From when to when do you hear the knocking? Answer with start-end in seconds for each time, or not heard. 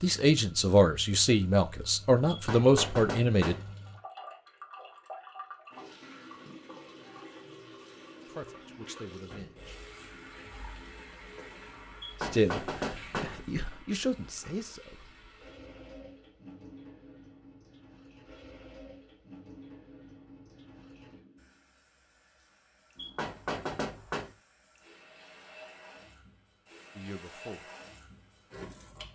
2.2-3.8, 12.0-13.4, 22.9-24.3.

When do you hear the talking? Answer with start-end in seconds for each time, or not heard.
0.0-3.5, 8.3-9.8, 12.2-15.2, 26.9-27.6.